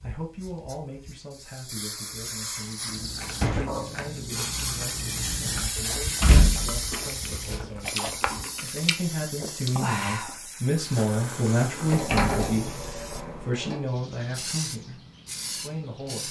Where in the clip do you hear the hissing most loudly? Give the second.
6 s.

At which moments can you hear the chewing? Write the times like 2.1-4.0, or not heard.
2.8-12.1.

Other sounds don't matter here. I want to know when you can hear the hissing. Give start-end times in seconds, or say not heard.
0.0-16.2.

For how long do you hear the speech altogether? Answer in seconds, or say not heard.
16 s.